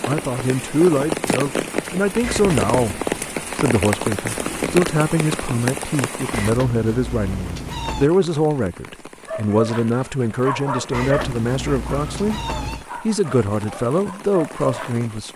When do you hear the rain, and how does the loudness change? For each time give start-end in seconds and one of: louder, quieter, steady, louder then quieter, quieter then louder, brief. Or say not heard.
0.0-15.3 quieter.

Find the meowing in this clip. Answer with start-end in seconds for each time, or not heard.
2.2-2.8, 6.3-8.1, 10.9-12.8.